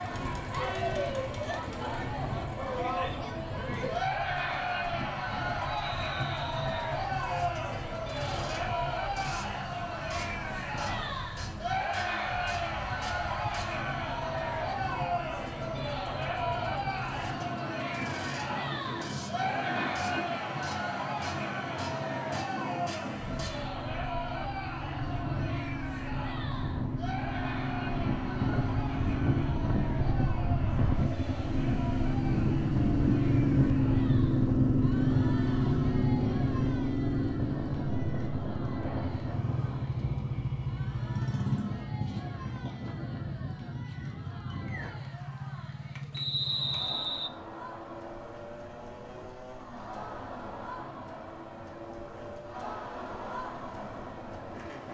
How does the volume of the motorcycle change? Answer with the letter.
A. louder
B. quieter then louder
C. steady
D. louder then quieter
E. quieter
D.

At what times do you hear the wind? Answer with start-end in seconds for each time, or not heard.
0.0-44.9.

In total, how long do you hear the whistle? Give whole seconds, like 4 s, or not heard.
2 s.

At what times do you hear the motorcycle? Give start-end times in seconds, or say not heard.
0.0-54.8.